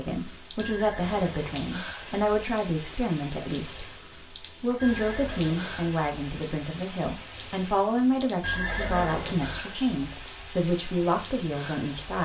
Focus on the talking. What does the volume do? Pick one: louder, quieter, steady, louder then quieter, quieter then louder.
steady.